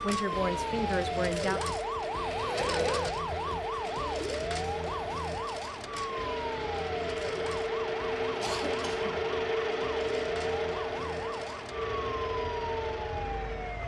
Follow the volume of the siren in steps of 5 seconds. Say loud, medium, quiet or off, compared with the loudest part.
loud, medium, medium.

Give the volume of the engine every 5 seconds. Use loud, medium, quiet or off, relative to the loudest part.
medium, loud, loud.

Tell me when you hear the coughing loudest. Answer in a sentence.
The loudest moment of the coughing is at 3 seconds.